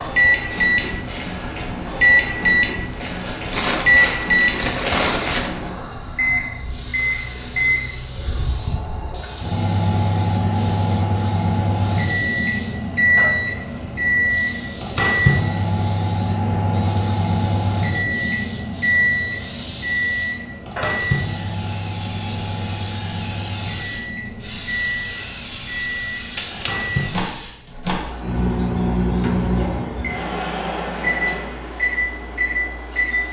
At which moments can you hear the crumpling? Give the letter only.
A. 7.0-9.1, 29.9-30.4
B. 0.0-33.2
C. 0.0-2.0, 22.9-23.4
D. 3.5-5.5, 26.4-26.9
D.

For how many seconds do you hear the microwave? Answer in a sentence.
You can hear the microwave for 33 seconds altogether.